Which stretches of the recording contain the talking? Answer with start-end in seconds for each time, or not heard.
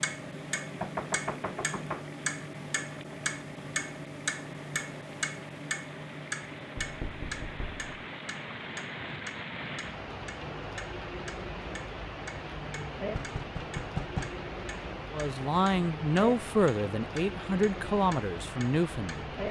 15.1-19.4.